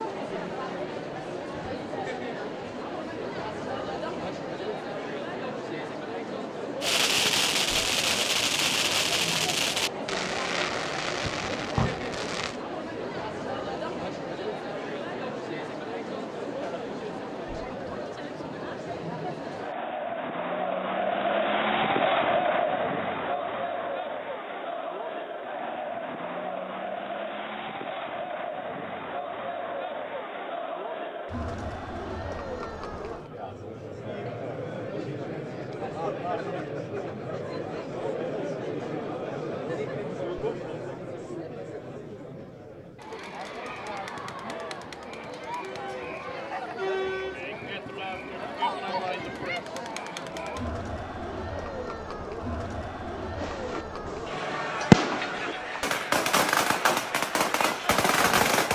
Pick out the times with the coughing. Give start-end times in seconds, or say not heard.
not heard.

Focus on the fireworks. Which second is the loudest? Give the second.
55 s.